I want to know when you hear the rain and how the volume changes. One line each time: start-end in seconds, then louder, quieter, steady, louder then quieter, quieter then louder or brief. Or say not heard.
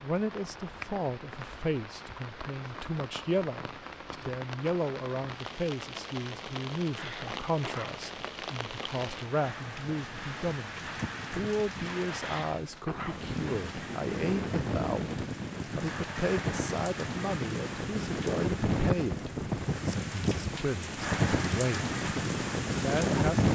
0.0-23.4 louder.